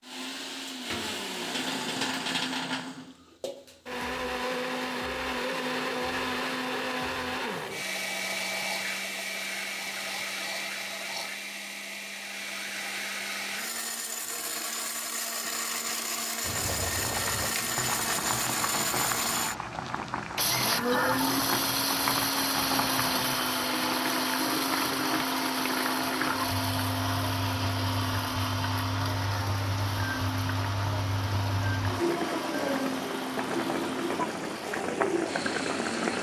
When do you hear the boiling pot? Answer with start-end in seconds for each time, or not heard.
16.4-36.1.